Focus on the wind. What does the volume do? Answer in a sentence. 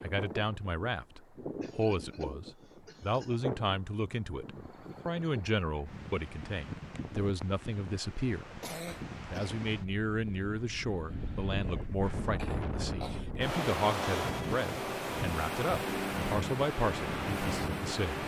The loudness of the wind goes up.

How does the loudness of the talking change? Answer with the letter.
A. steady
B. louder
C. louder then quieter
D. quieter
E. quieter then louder
A.